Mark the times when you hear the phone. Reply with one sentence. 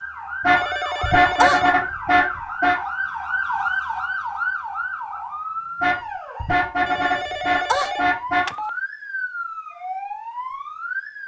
The phone can be heard from 0.6 to 1.8 s and from 6.8 to 8.7 s.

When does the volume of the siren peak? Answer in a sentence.
The loudest moment of the siren is at 4 seconds.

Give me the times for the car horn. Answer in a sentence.
You can hear the car horn from 0.4 to 2.8 s and from 5.8 to 8.4 s.